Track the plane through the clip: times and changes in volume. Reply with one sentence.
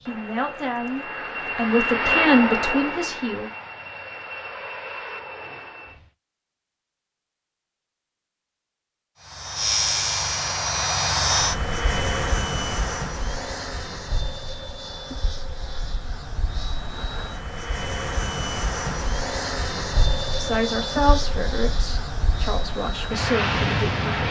The plane can be heard from 0.0 to 6.1 s, getting louder then quieter; and from 9.2 to 24.2 s, getting quieter then louder.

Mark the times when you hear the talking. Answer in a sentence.
You can hear the talking from 0.0 to 3.5 s and from 20.4 to 24.2 s.